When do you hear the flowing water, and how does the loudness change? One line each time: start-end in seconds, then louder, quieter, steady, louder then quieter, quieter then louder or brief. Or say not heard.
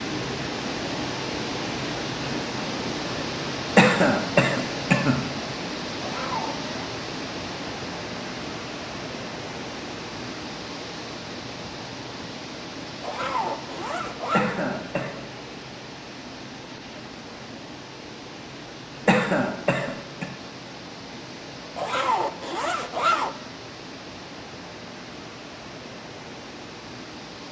0.0-27.4 quieter.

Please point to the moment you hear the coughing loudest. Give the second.
4 s.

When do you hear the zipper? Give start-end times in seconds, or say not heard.
6.0-6.7, 13.0-14.4, 21.8-23.4.